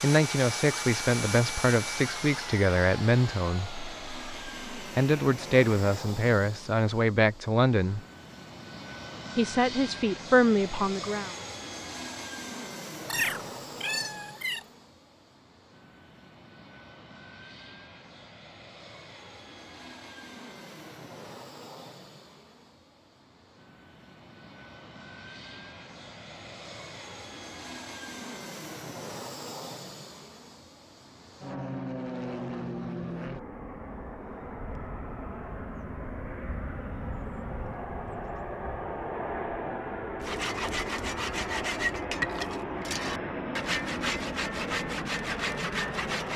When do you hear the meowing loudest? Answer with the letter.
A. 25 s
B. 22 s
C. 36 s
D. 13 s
D.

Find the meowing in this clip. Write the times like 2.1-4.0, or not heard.
13.0-14.7.